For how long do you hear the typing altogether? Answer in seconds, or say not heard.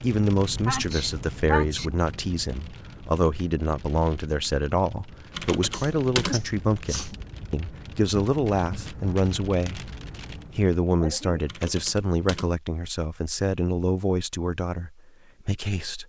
2 s.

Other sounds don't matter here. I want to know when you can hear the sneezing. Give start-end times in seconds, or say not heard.
0.7-1.9, 5.7-7.1, 10.9-11.6.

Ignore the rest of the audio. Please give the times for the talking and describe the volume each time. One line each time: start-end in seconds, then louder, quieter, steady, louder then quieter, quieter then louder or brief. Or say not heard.
0.0-9.9 steady
10.6-16.0 quieter.